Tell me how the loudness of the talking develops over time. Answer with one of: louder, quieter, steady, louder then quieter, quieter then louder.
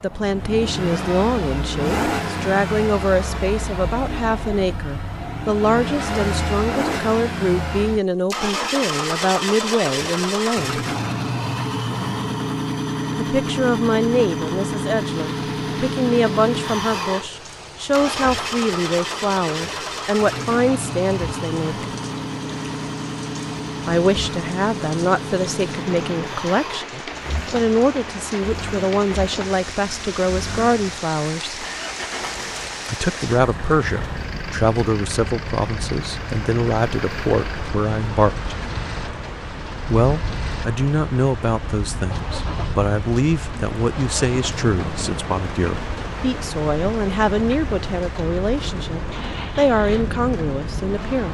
steady.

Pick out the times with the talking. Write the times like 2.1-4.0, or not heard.
0.0-10.8, 13.2-21.9, 23.9-31.6, 32.9-38.5, 39.9-51.2.